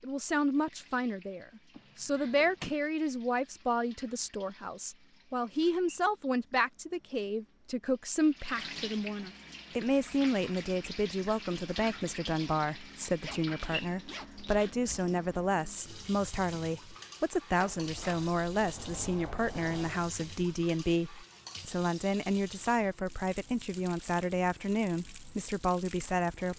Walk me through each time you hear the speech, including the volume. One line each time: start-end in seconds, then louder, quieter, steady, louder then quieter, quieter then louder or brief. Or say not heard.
0.0-26.5 steady.